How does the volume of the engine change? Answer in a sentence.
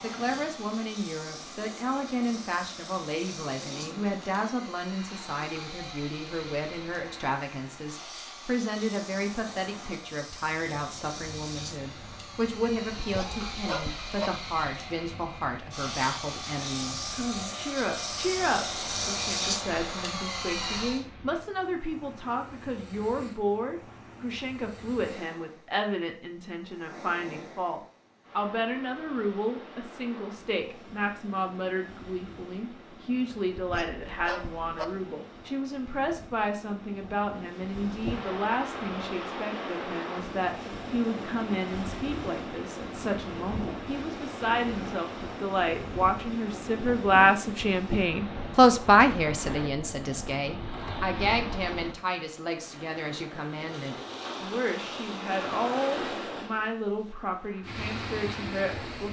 The loudness of the engine goes up.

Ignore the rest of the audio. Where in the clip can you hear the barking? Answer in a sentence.
You can hear the barking from 13.0 to 14.3 s and from 33.5 to 34.9 s.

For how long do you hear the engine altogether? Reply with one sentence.
You can hear the engine for 21 seconds altogether.